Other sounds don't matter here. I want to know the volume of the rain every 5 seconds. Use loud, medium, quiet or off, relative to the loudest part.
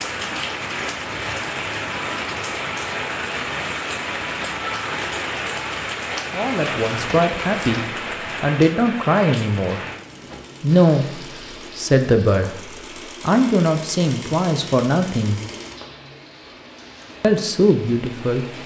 loud, loud, quiet, quiet.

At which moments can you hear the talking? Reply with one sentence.
You can hear the talking from 6.3 to 9.8 s, from 10.6 to 15.4 s and from 17.2 to 18.4 s.